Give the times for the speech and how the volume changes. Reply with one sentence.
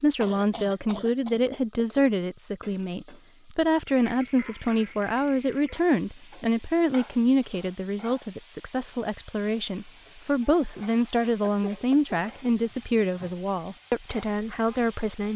The speech can be heard from 0.0 to 15.3 s, at a steady volume.